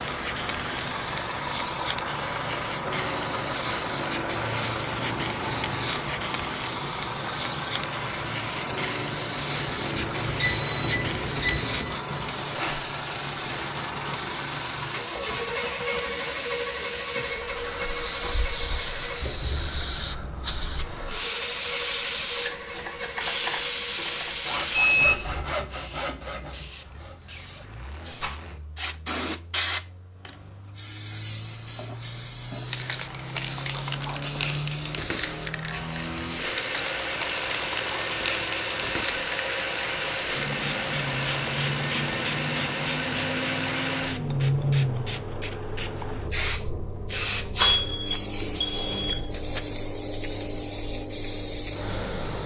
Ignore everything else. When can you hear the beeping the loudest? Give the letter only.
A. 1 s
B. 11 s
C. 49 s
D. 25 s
D.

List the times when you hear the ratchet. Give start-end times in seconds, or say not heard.
not heard.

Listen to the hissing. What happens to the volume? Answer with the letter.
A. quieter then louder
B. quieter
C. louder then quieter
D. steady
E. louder
D.